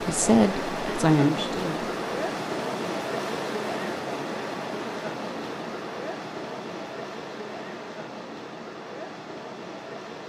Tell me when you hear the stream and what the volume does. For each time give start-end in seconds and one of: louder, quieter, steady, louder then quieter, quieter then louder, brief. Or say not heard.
0.0-10.2 quieter.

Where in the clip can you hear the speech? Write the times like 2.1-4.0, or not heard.
0.1-1.9.